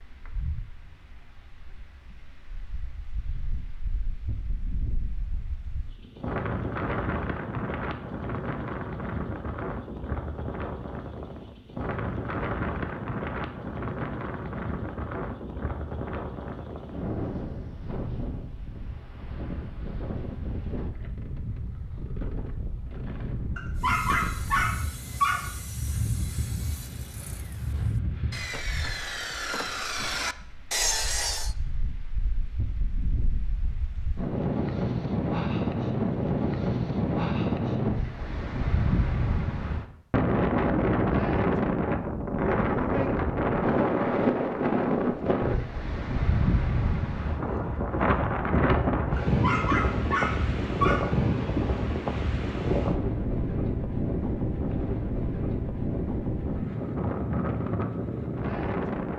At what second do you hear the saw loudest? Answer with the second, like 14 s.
31 s.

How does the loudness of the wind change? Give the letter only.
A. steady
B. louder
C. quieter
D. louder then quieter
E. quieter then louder
B.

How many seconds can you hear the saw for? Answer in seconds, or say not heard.
8 s.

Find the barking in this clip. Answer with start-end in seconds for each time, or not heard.
23.6-25.5, 49.1-51.1.